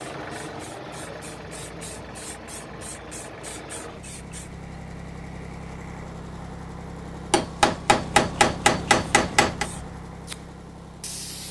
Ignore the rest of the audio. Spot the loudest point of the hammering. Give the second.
8 s.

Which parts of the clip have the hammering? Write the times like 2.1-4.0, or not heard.
7.3-9.7.